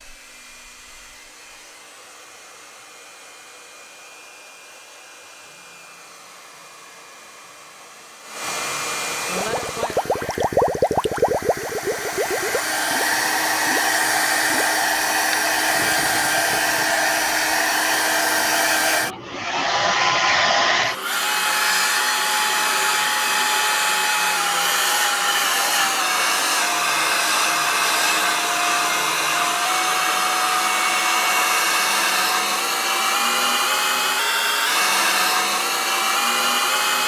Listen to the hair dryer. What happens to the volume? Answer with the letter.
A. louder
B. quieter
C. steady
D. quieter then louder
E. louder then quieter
A.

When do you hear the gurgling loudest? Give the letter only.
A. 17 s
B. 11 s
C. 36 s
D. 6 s
B.